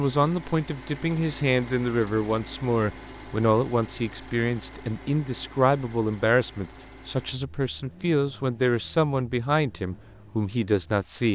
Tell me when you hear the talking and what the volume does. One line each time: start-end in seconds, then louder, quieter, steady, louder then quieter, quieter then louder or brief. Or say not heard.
0.0-11.2 steady.